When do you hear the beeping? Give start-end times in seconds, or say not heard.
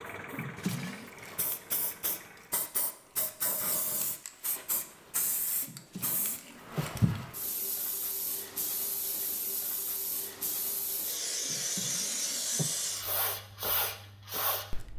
not heard.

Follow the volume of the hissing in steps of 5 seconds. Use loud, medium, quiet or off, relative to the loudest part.
medium, loud, loud.